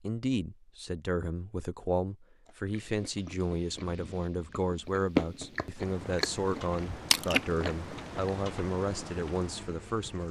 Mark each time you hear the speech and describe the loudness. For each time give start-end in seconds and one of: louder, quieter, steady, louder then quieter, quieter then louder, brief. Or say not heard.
0.0-10.2 steady.